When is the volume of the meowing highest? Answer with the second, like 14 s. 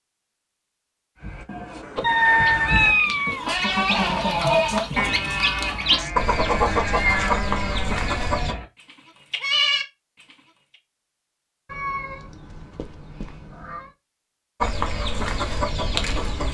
3 s.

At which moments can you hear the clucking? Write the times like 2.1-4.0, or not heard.
1.9-8.6, 14.6-16.4.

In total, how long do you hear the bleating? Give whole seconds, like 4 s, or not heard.
9 s.